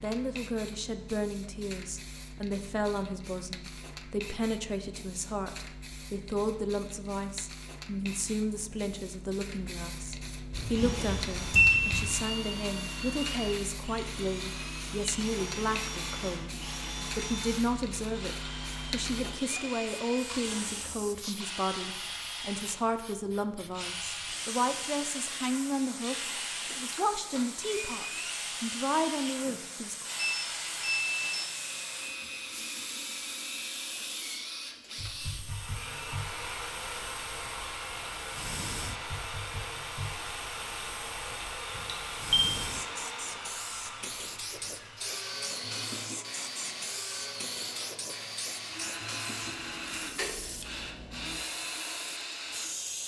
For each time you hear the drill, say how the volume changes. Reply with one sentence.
The drill can be heard from 10.6 to 52.7 s, at a steady volume.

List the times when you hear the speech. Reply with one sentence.
You can hear the speech from 0.0 to 30.1 s.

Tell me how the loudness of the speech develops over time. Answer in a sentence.
The loudness of the speech stays about the same.